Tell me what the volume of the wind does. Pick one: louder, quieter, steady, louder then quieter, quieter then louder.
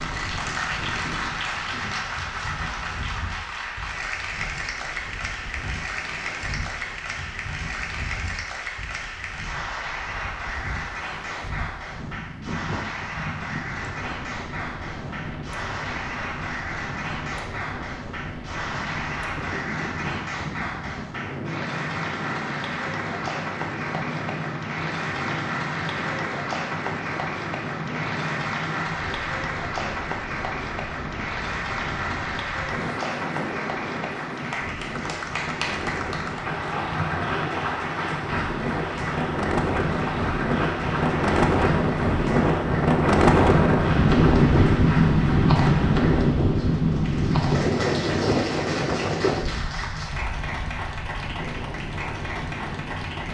louder.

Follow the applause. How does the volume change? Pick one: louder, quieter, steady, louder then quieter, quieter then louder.
steady.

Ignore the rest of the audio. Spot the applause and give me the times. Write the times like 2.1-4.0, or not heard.
0.0-53.3.